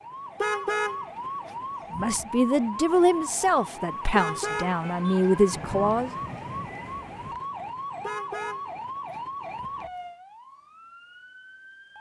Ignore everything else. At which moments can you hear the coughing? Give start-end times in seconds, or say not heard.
not heard.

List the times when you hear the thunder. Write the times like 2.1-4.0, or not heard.
5.5-7.4.